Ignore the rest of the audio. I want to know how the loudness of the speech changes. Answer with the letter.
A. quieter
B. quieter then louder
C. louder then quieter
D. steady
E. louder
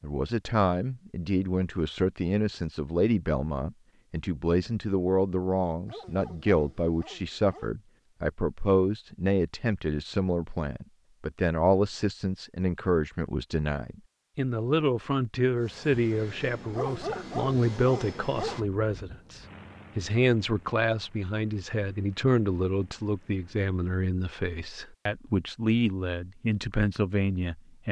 D.